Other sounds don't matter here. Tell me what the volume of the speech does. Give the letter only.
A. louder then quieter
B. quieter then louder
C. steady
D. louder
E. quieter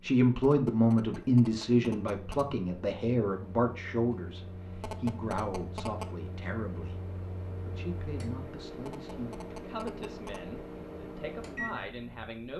E.